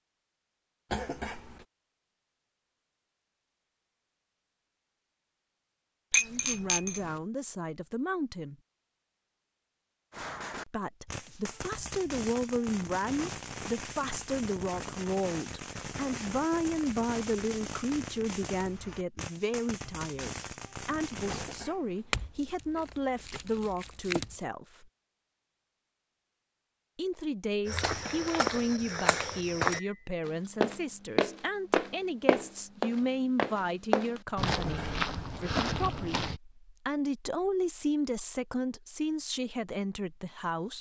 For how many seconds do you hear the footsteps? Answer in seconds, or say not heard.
9 s.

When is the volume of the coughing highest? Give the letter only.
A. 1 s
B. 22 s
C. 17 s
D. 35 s
A.